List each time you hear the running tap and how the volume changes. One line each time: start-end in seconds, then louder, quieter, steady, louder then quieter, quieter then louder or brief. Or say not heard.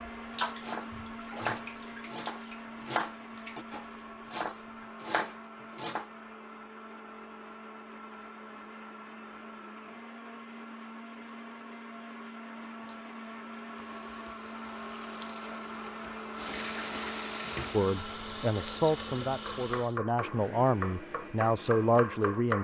0.0-4.8 quieter
12.7-19.9 louder.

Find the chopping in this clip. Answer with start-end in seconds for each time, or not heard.
0.6-6.0, 19.4-22.5.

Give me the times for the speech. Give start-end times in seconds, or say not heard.
17.7-22.5.